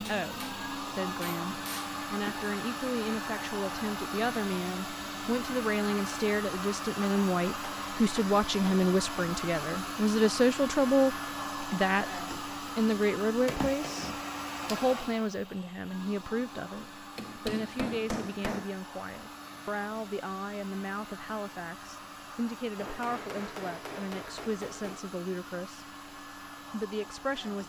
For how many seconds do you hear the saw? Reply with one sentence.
The saw can't be heard in this clip.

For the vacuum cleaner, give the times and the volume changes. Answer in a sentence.
You can hear the vacuum cleaner from 0.0 to 27.6 s, getting quieter.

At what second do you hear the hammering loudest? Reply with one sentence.
The loudest moment of the hammering is at 18 seconds.